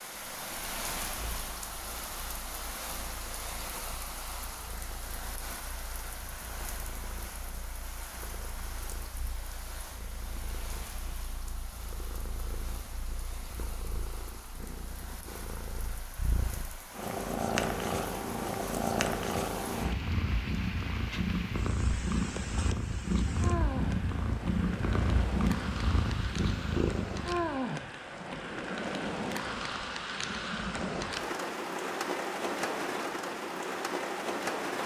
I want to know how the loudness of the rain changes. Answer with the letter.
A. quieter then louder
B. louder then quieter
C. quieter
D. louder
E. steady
A.